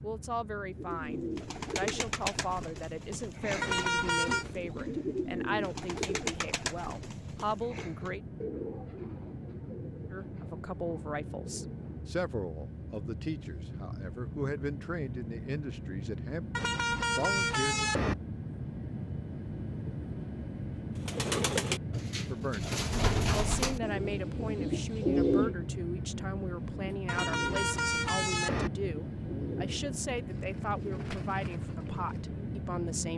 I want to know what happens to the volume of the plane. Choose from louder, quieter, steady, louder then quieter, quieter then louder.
louder.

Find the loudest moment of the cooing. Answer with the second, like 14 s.
25 s.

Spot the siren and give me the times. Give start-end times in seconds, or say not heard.
not heard.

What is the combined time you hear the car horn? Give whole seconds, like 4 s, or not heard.
4 s.